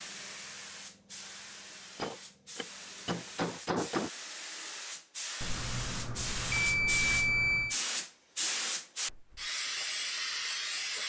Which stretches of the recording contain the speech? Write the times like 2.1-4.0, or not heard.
not heard.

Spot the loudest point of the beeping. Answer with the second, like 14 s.
7 s.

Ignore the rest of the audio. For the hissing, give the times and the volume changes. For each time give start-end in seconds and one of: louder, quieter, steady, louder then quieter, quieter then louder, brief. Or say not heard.
0.0-11.0 louder.